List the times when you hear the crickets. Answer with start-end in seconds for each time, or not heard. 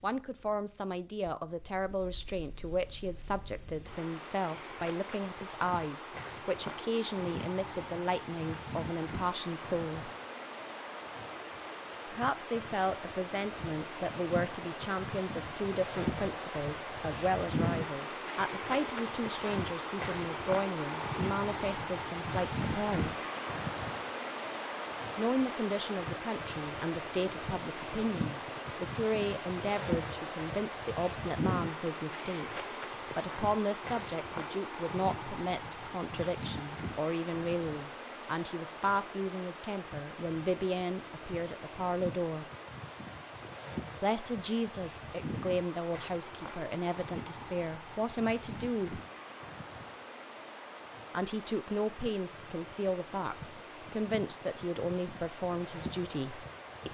0.0-56.9.